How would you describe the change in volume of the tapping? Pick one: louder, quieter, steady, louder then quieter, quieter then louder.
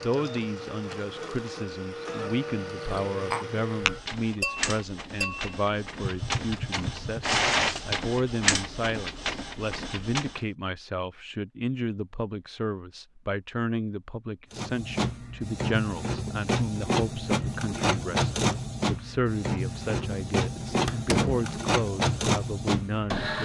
quieter.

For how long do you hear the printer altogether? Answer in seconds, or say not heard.
19 s.